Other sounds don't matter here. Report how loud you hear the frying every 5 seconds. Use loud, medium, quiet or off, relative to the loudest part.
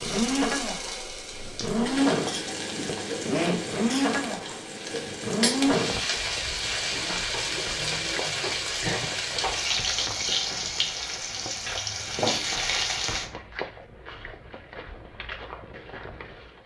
medium, loud, loud, off.